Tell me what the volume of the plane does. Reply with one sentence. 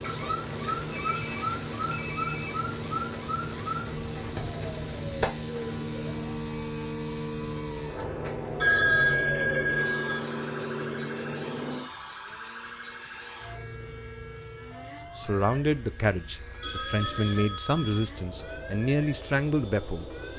The loudness of the plane stays about the same.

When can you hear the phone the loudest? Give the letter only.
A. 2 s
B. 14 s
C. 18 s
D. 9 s
D.